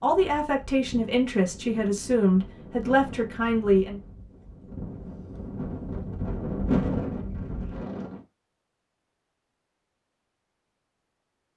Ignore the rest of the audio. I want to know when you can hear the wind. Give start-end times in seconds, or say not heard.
0.0-8.2.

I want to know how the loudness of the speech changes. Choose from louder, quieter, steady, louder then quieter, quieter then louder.
steady.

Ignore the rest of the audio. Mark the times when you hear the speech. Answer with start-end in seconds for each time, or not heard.
0.0-4.0.